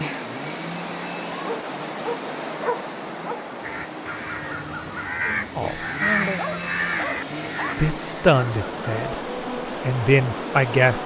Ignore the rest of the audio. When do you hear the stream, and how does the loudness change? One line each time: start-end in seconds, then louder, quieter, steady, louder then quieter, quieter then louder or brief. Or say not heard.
0.0-11.0 quieter then louder.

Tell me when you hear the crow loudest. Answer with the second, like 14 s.
6 s.